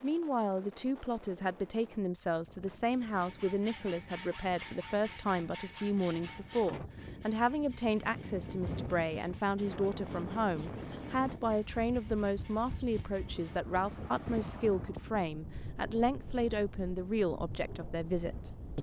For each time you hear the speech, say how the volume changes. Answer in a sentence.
The speech can be heard from 0.0 to 18.7 s, at a steady volume.